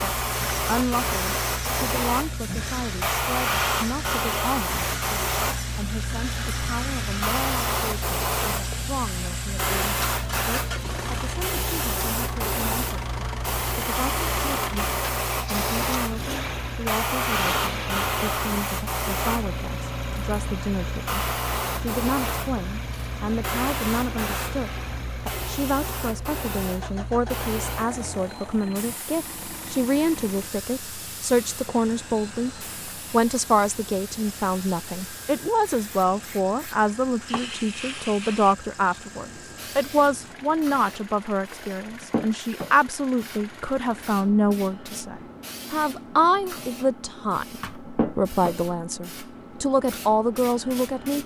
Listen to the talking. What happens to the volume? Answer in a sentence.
The volume of the talking goes up.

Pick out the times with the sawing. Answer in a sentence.
You can't hear the sawing here.